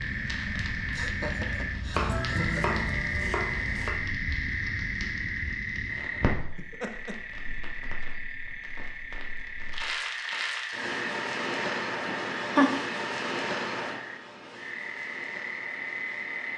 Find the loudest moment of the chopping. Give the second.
2 s.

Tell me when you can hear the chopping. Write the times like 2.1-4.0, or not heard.
1.9-4.0.